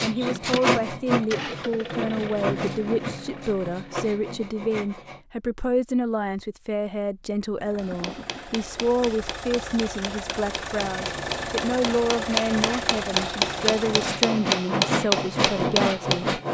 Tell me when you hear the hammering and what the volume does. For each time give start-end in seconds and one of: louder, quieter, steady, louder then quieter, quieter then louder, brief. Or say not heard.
7.8-16.2 louder.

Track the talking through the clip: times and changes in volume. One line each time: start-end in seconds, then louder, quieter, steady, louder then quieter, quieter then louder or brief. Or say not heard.
0.0-16.4 steady.